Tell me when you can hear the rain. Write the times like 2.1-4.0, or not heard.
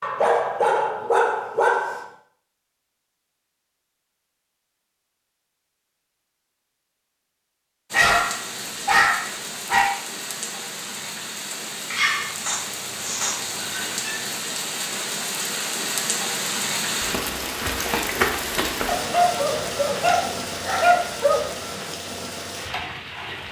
7.9-23.4.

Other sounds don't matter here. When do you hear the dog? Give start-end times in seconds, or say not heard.
0.0-2.0, 7.9-9.9, 11.9-14.2, 18.9-21.4.